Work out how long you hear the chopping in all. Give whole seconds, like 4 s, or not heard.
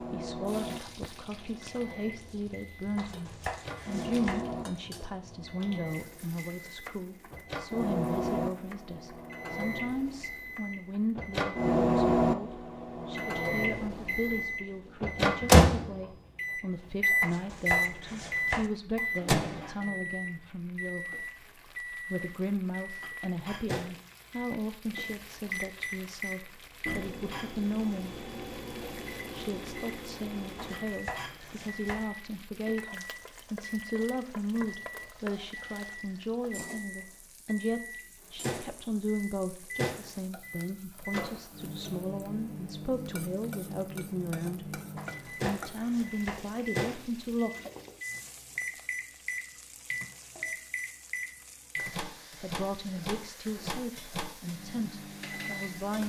6 s.